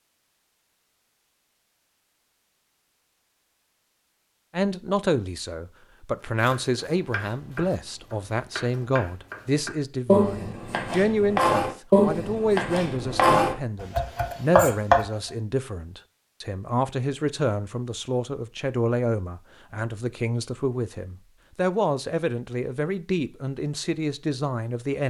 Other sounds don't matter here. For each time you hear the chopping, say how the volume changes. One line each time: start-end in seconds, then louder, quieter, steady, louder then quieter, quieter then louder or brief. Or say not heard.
6.4-15.1 louder.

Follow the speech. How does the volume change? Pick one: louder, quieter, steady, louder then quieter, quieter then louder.
steady.